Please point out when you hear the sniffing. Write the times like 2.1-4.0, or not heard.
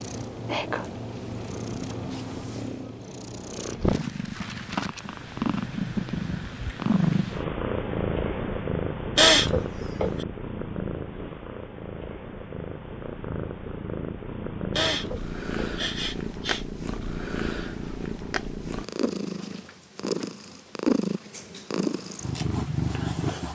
9.2-10.1, 14.8-16.6.